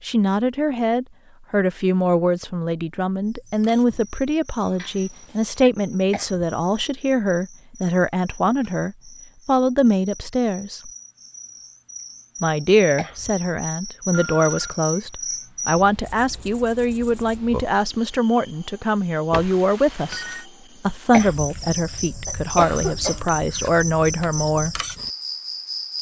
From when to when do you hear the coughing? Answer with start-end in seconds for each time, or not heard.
6.1-6.5, 12.9-13.4, 21.1-23.2.